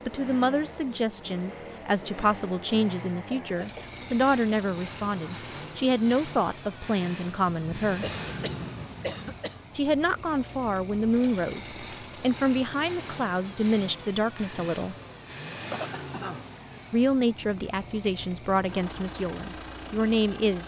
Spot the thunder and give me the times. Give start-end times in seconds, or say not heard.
7.5-9.4.